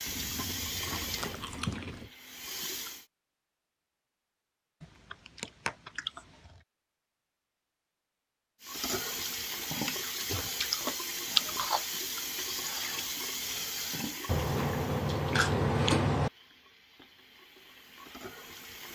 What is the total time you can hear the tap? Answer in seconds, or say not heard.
13 s.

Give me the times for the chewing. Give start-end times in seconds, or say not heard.
0.1-2.1, 4.8-6.5, 10.2-11.8, 14.2-16.3.